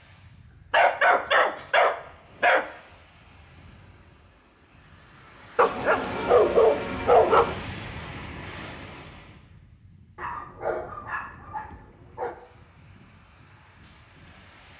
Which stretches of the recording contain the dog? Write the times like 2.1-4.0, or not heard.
0.7-2.6, 5.5-7.5, 10.2-12.3.